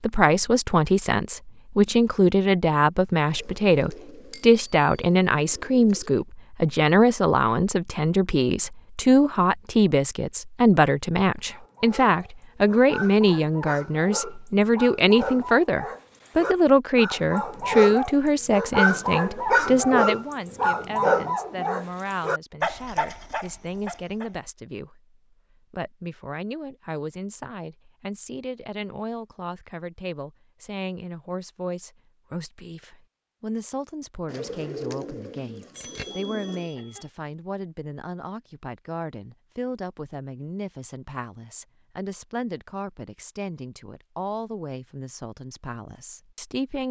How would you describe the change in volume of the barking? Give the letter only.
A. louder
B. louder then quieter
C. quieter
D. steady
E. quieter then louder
B.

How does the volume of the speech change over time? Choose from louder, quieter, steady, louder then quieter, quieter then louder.
quieter.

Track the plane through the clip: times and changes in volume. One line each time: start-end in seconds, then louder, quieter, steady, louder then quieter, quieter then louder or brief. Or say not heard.
not heard.